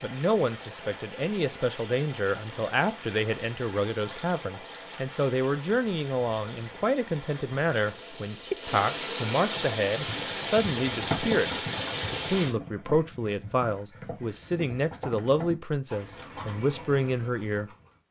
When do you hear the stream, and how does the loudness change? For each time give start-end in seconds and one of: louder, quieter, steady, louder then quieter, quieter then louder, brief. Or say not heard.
0.0-12.6 louder.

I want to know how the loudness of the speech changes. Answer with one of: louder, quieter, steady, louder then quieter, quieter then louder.
steady.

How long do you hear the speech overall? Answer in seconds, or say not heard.
17 s.